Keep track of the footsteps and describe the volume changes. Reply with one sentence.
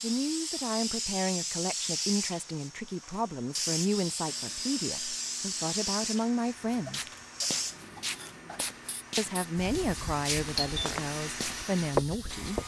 The loudness of the footsteps goes up.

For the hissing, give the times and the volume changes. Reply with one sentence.
The hissing can be heard from 0.0 to 12.6 s, getting quieter.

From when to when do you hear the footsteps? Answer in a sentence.
You can hear the footsteps from 6.5 to 12.6 s.